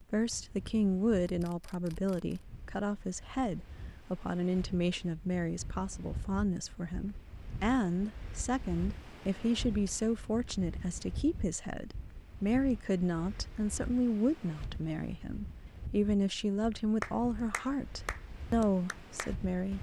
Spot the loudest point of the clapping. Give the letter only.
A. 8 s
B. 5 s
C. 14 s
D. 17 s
D.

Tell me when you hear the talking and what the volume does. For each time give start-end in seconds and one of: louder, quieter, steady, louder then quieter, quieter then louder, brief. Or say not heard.
0.0-19.7 steady.